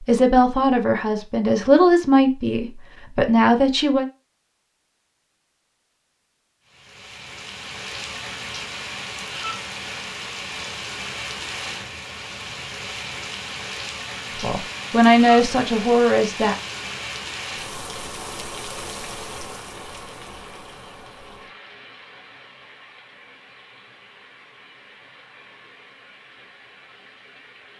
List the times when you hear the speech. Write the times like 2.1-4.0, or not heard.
0.0-4.0, 14.3-16.6.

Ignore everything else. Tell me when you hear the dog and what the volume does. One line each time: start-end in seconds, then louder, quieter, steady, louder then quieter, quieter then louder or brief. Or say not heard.
not heard.